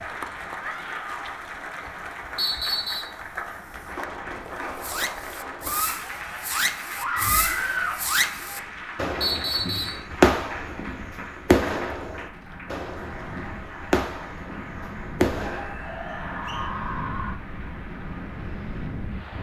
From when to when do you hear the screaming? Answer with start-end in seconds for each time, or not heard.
0.6-1.4, 7.0-8.1, 15.3-17.4.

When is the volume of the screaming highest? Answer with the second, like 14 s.
8 s.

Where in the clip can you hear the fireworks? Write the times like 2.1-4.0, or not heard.
4.6-15.8.